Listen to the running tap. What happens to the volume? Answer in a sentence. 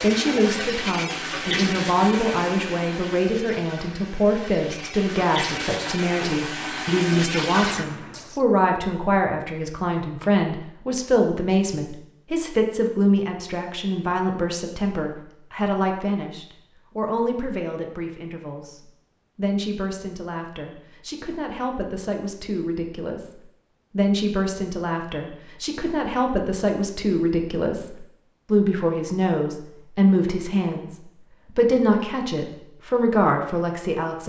The loudness of the running tap goes down, then up.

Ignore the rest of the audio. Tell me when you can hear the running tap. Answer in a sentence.
The running tap can be heard from 0.0 to 8.4 s.